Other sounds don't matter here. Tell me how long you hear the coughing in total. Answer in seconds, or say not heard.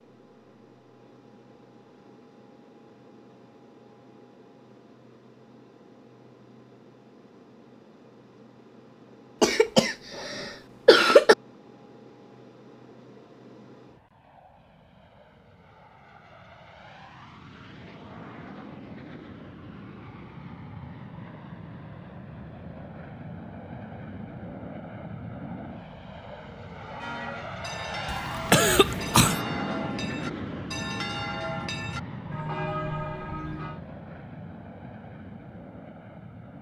3 s.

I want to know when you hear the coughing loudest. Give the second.
11 s.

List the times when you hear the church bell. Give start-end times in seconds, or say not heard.
26.8-33.8.